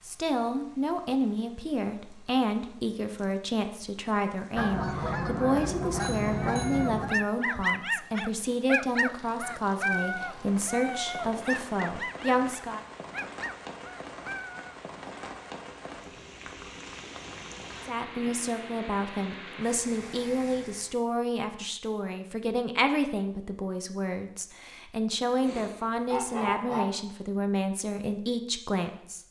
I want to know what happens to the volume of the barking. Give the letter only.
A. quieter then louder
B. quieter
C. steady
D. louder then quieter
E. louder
B.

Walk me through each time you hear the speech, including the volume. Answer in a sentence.
You can hear the speech from 0.0 to 12.8 s, at a steady volume; and from 17.9 to 29.2 s, at a steady volume.